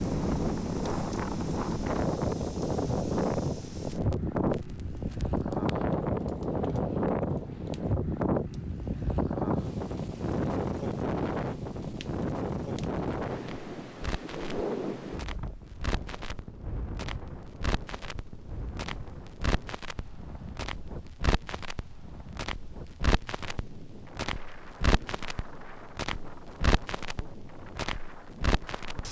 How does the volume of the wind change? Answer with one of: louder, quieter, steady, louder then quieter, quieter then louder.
quieter.